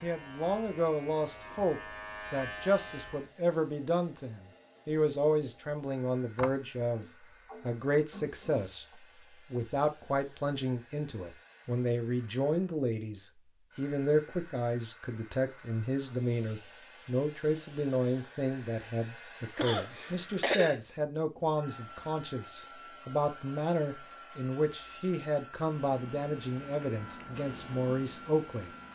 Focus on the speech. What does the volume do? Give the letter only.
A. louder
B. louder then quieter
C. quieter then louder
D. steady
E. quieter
D.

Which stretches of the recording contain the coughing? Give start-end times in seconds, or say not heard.
6.3-8.7, 19.6-20.8.